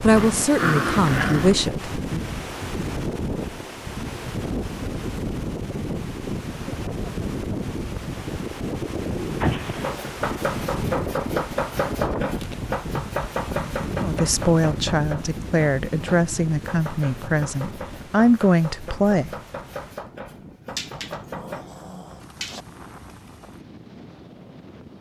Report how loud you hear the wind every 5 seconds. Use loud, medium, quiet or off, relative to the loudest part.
loud, loud, loud, medium, quiet.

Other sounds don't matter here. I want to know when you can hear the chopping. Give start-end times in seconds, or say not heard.
9.8-21.6.